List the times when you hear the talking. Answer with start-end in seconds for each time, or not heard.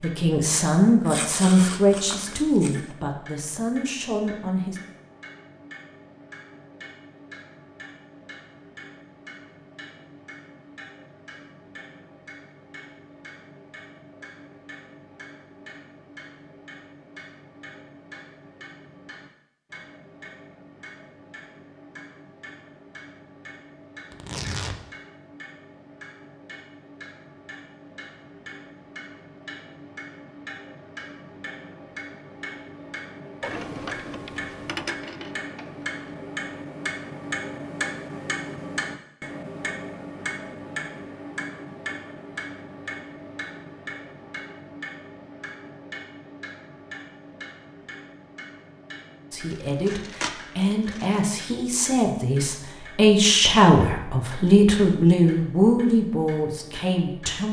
0.0-4.8, 49.3-57.4.